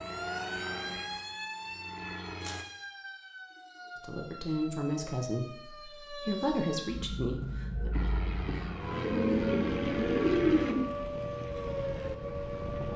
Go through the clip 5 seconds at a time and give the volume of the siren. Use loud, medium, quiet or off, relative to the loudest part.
medium, loud, loud.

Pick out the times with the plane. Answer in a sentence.
You can hear the plane from 0.0 to 2.6 s and from 7.9 to 10.8 s.